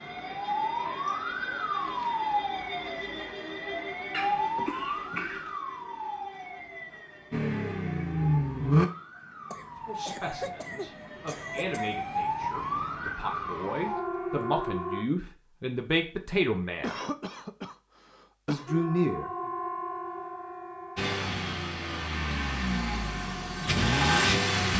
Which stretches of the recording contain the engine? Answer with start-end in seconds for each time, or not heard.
7.3-8.9, 20.9-24.7.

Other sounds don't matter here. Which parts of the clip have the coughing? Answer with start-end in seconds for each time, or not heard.
4.1-5.5, 9.5-12.0, 16.8-18.7.